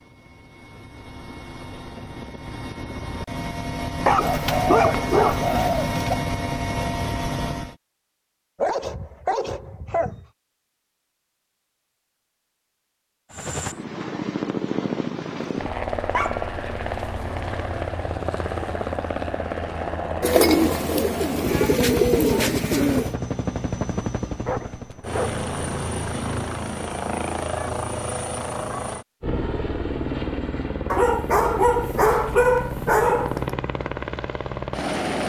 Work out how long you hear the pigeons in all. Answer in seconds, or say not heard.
5 s.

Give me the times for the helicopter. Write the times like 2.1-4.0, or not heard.
0.0-7.8, 13.3-35.2.